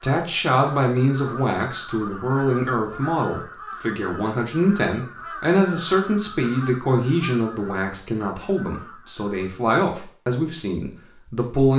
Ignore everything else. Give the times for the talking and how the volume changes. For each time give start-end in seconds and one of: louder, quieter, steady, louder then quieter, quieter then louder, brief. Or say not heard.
0.0-11.7 steady.